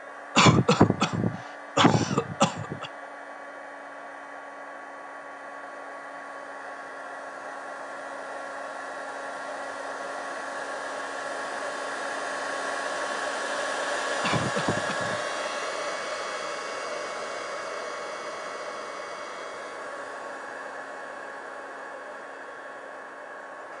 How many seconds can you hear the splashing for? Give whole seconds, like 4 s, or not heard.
not heard.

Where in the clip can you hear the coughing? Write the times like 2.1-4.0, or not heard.
0.3-2.9, 14.2-15.2.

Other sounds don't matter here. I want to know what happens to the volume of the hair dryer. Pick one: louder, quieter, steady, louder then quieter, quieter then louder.
louder then quieter.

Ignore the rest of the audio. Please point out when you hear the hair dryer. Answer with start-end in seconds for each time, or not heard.
0.0-23.7.